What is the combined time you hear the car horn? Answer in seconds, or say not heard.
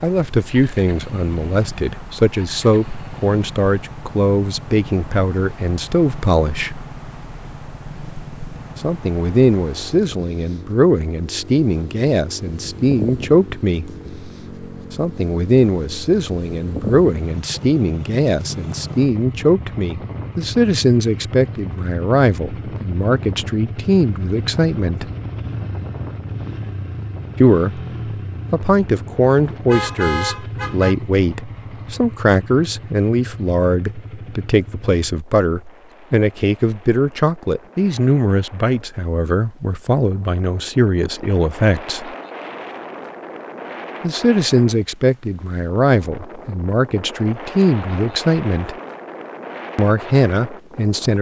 2 s.